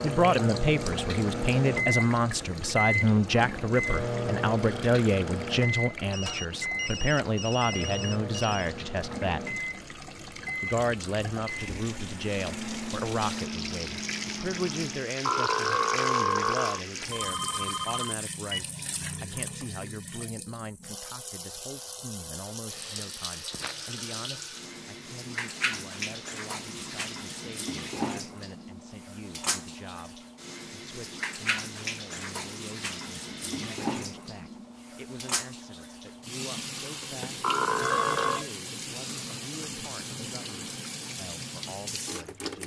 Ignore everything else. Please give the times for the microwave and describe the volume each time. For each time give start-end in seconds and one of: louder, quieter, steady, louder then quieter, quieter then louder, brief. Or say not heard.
0.0-15.2 quieter.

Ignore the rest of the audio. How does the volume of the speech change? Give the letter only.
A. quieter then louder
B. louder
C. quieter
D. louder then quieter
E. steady
C.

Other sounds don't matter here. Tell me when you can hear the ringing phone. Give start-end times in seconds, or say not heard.
6.1-8.7, 16.9-18.7, 37.8-38.5.